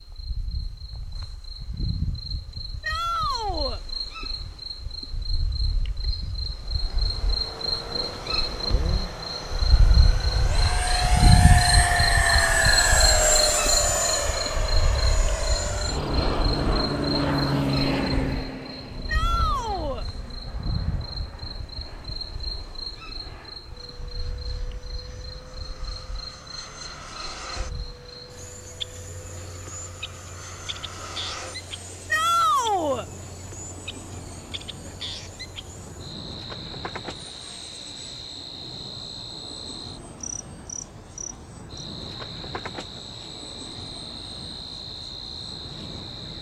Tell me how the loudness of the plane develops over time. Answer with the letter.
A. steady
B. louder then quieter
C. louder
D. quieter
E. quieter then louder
D.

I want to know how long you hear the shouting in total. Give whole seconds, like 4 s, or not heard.
3 s.